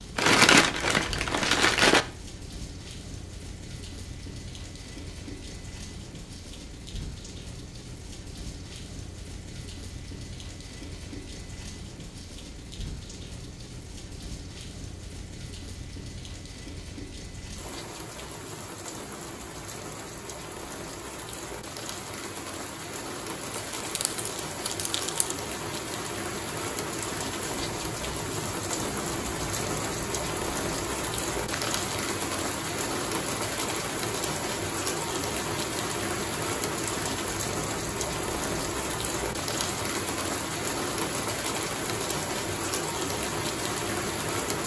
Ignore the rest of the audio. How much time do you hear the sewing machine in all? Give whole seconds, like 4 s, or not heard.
not heard.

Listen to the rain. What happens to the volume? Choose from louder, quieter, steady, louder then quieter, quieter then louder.
louder.